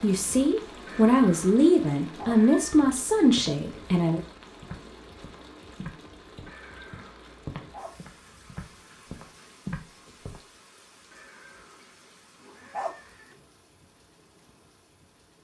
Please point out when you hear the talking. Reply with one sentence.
You can hear the talking from 0.0 to 4.2 s.